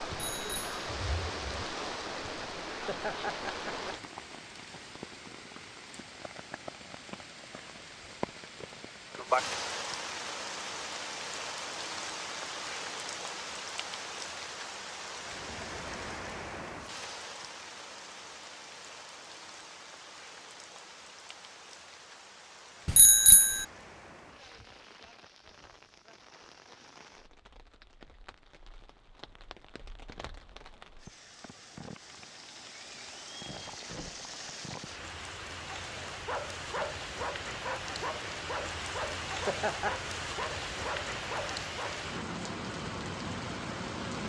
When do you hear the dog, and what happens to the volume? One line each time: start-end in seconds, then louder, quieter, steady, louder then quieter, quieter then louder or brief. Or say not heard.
36.0-42.0 steady.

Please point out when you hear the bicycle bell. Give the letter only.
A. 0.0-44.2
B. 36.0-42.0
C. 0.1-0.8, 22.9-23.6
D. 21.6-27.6
C.